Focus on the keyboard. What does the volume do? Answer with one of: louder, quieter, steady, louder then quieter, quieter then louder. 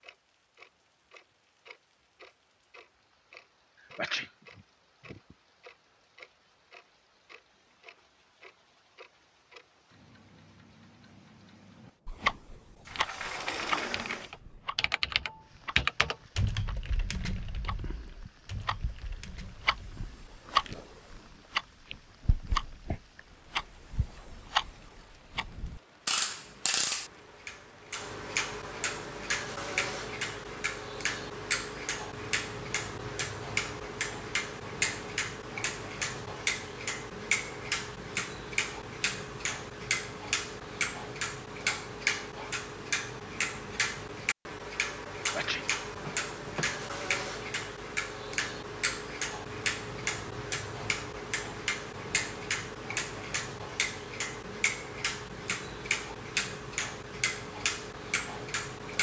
louder then quieter.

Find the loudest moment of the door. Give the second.
14 s.